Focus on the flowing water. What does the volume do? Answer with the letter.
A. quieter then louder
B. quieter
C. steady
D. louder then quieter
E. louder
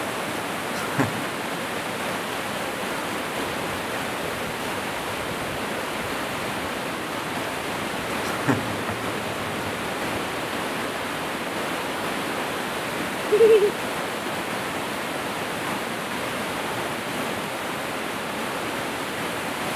C.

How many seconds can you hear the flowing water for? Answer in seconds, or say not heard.
20 s.